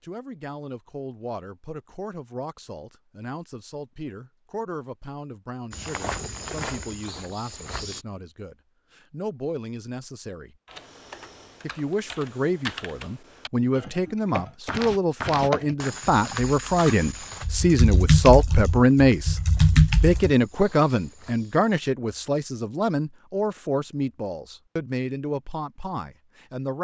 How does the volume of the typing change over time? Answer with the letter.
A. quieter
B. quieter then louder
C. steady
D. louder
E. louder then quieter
D.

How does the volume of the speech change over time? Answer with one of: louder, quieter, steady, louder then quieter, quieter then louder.
louder then quieter.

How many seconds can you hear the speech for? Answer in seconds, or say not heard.
25 s.